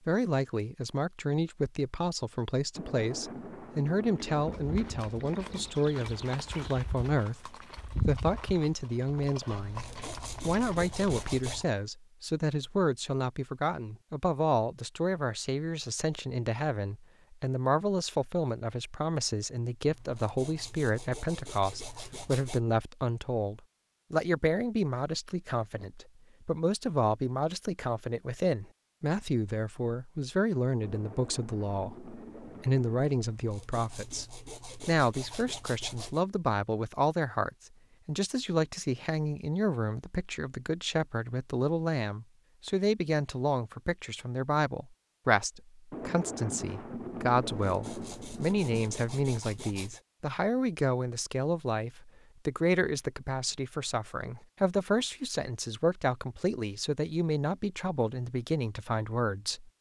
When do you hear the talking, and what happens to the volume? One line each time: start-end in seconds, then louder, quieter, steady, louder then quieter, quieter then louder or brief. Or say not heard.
0.1-59.7 steady.